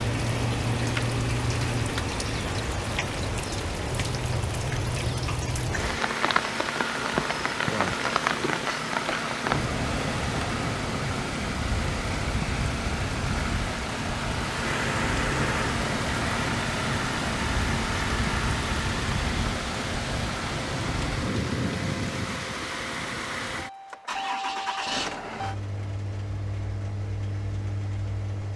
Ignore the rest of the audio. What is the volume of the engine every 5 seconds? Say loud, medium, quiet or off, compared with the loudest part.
loud, loud, loud, loud, loud, medium.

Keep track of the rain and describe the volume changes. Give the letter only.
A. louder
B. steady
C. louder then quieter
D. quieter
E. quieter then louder
B.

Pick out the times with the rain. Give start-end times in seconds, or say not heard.
0.0-22.5.